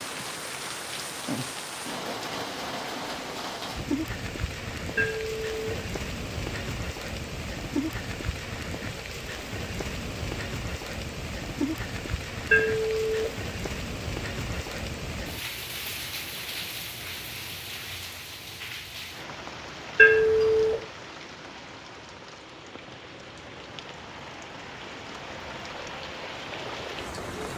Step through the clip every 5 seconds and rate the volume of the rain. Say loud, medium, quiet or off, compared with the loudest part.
loud, loud, loud, loud, medium, loud.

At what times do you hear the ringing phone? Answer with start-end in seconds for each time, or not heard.
5.0-5.8, 12.5-13.3, 19.9-20.8.